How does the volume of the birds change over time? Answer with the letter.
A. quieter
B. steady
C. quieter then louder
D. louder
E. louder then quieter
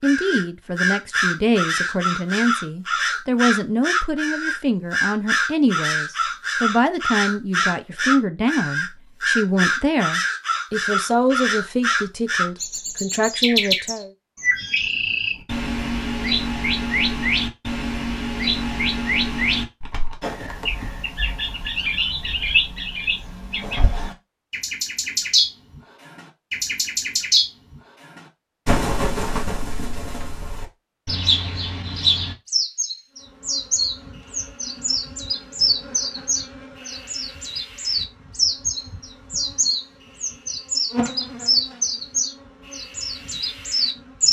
B.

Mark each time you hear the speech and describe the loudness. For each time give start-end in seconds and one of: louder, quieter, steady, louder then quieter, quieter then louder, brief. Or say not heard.
0.0-14.1 steady.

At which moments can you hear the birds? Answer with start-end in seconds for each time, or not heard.
0.0-44.2.